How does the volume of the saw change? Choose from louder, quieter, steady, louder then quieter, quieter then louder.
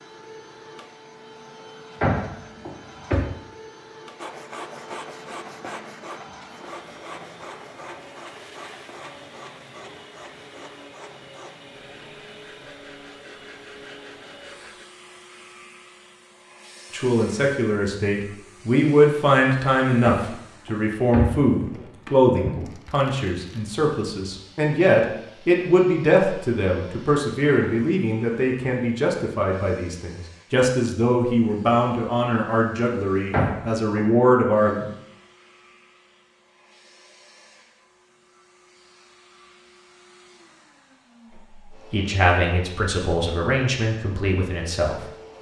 quieter.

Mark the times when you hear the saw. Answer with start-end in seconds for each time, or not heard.
4.2-14.8.